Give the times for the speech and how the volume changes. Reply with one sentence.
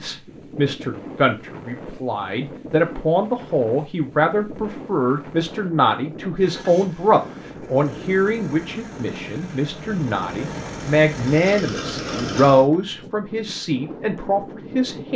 The speech can be heard from 0.0 to 15.1 s, at a steady volume.